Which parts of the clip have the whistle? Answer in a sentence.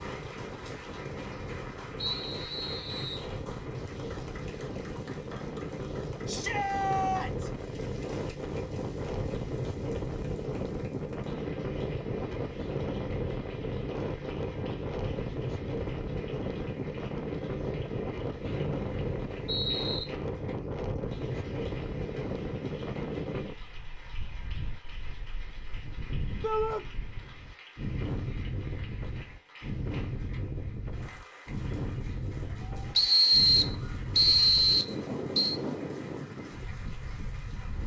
You can hear the whistle from 2.0 to 3.2 s, from 18.4 to 20.1 s and from 33.0 to 35.6 s.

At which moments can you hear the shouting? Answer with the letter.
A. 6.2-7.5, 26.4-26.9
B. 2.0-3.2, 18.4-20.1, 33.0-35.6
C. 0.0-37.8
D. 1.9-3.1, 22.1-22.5
A.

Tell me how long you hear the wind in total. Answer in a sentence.
The wind can be heard for 38 seconds in total.